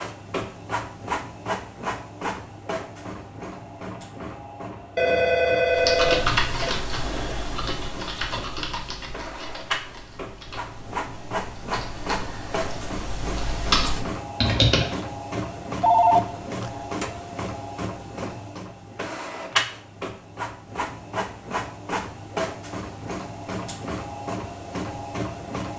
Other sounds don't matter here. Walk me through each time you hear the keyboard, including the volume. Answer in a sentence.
You can hear the keyboard from 5.7 to 14.9 s, getting quieter then louder.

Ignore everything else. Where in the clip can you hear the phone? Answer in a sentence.
The phone can be heard from 5.0 to 6.8 s and from 15.8 to 16.7 s.